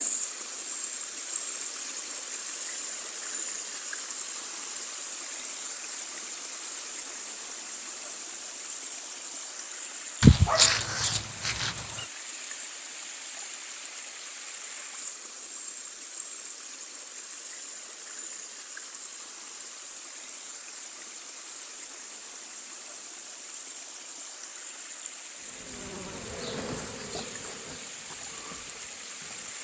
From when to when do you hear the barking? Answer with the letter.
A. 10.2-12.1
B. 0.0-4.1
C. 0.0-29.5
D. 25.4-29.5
A.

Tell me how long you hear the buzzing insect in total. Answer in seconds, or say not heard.
4 s.